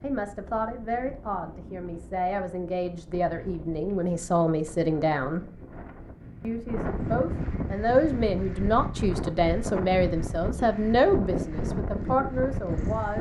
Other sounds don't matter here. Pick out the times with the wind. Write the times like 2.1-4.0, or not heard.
0.0-13.1.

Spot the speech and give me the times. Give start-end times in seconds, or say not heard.
0.0-5.5, 6.4-13.1.